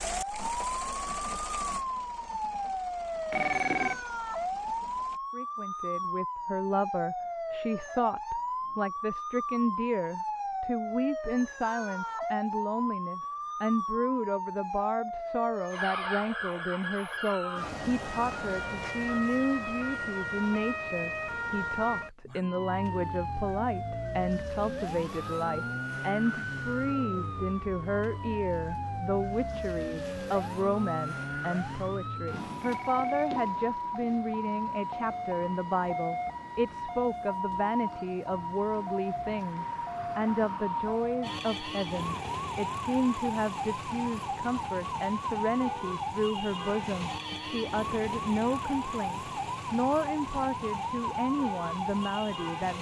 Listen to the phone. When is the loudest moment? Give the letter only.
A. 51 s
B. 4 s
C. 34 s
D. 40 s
B.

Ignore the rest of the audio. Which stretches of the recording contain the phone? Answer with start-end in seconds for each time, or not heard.
3.3-4.0, 32.6-34.2.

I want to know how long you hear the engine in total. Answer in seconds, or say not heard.
5 s.